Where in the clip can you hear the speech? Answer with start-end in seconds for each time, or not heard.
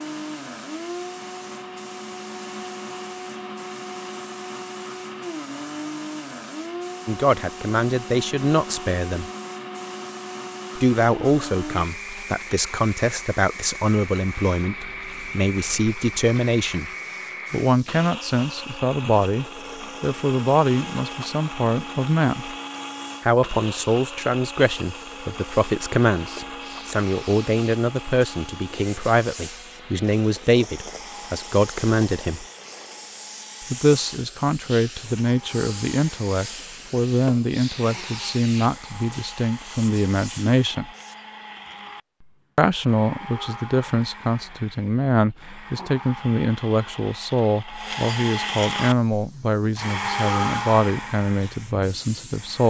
7.0-9.3, 10.8-16.9, 17.5-22.6, 23.2-32.5, 33.7-40.9, 42.5-52.6.